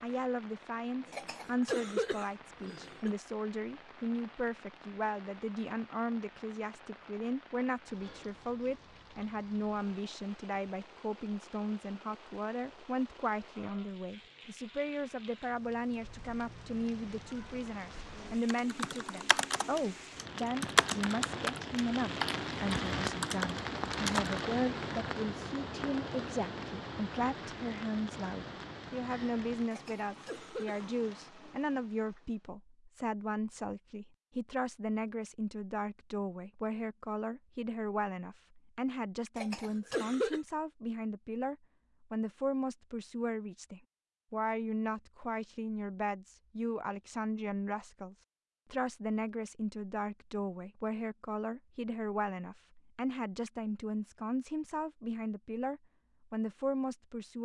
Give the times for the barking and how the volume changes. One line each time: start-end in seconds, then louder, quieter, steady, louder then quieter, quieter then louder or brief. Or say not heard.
not heard.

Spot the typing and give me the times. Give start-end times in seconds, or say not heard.
18.4-24.4.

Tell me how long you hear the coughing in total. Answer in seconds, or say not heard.
4 s.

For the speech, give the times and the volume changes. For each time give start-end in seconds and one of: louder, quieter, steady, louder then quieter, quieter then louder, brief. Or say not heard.
0.0-57.4 steady.